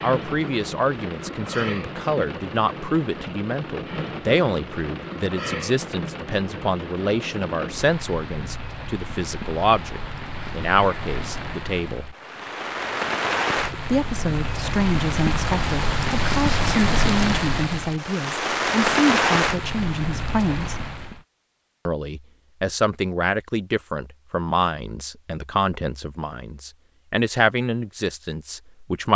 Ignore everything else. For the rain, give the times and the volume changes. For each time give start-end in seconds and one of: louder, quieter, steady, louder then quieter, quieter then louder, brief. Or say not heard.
0.0-21.2 louder.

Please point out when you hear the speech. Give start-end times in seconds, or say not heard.
0.0-12.2, 13.8-20.8, 21.9-29.1.